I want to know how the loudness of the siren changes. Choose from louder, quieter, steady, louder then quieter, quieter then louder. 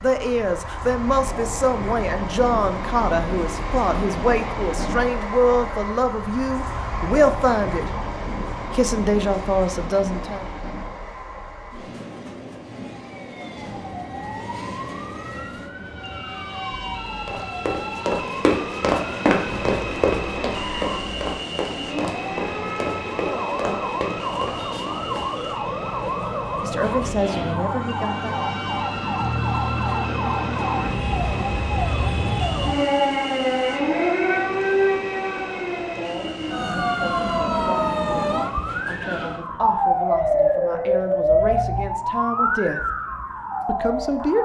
louder.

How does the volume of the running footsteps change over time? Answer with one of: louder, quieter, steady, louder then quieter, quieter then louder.
quieter.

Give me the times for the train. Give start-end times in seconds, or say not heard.
0.0-39.7.